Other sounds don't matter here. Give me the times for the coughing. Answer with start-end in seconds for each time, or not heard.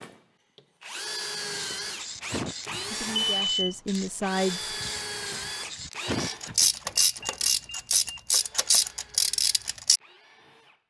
2.3-3.1, 6.0-7.3.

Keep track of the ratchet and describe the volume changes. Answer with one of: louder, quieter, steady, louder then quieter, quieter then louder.
louder.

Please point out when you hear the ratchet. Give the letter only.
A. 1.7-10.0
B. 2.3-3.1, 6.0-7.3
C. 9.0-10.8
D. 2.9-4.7
A.